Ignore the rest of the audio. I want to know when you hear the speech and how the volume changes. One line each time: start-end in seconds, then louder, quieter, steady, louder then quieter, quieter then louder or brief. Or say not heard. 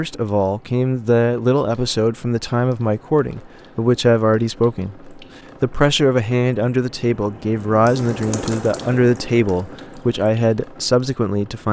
0.0-11.6 steady.